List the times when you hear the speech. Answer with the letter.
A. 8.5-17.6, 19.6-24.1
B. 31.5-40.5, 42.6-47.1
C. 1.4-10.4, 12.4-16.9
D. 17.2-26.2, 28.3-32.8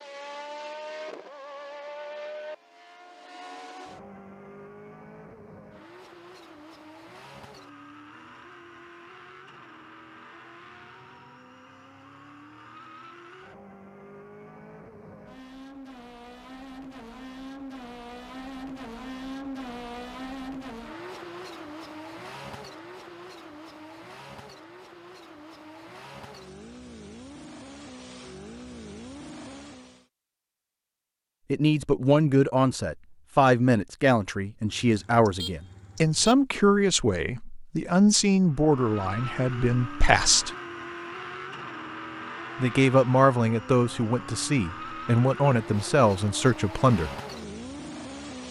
B.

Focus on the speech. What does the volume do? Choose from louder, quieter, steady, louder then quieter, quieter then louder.
steady.